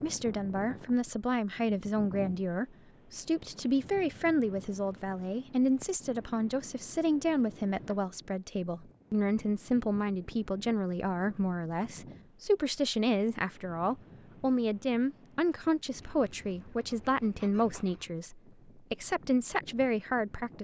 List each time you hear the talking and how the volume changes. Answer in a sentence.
The talking can be heard from 0.0 to 20.5 s, at a steady volume.